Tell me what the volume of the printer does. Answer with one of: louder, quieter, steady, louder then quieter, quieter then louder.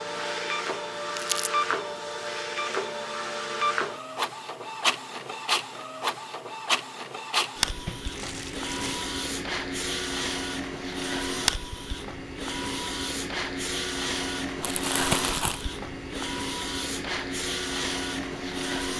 steady.